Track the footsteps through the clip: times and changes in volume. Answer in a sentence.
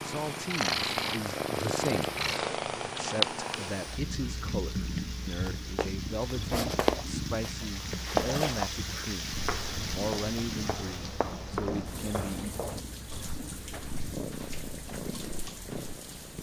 The footsteps can be heard from 5.5 to 15.9 s, getting quieter.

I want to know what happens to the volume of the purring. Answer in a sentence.
The volume of the purring goes down.